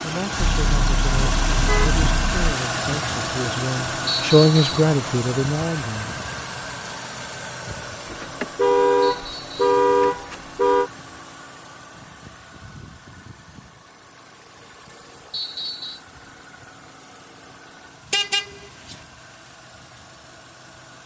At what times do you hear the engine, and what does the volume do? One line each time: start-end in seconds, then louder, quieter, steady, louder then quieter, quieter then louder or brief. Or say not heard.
0.0-21.0 quieter.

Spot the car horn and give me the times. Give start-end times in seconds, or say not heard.
0.4-2.5, 8.1-10.9, 18.1-18.9.